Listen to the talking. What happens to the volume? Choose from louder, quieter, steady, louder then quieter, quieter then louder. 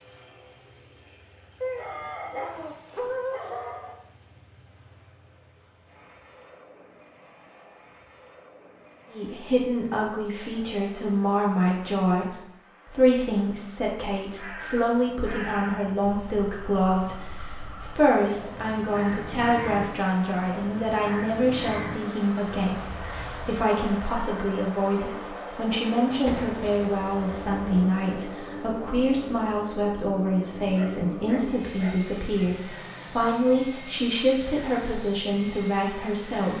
steady.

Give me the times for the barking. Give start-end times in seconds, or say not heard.
1.6-4.0, 30.7-32.6.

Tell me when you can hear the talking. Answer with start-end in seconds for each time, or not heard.
9.1-36.5.